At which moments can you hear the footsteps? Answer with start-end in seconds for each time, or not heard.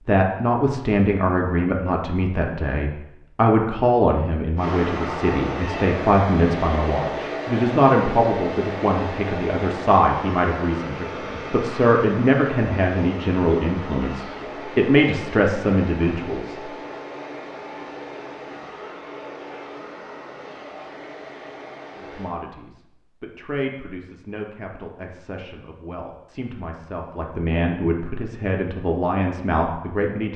not heard.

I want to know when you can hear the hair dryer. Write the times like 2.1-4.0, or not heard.
4.5-22.4.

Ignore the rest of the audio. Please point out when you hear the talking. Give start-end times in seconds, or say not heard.
0.1-16.6, 21.9-30.3.